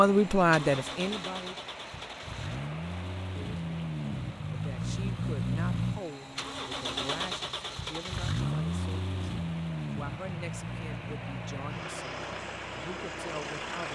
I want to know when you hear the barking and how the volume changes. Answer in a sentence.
You can't hear the barking here.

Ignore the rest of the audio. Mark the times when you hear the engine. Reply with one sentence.
The engine can be heard from 0.0 to 13.9 s.